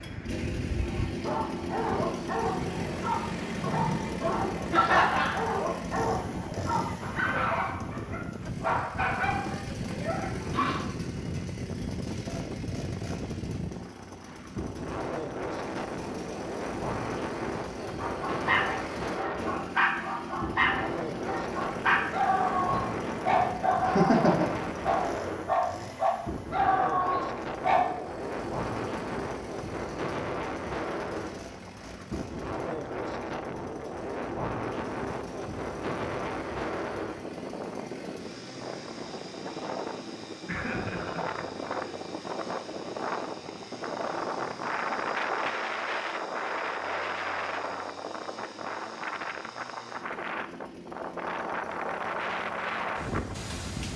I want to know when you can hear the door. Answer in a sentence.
You can't hear the door here.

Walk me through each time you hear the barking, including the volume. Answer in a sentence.
You can hear the barking from 0.8 to 10.8 s, at a steady volume; and from 17.9 to 27.9 s, at a steady volume.